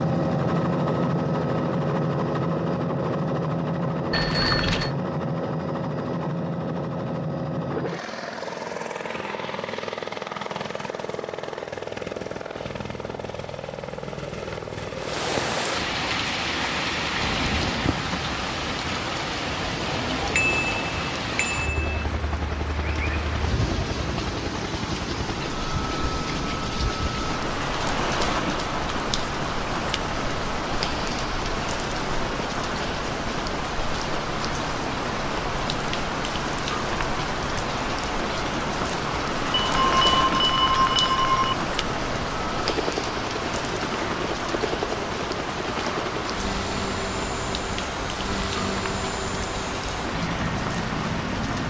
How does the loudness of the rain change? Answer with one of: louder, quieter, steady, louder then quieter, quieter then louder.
steady.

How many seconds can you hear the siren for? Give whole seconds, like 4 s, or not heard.
not heard.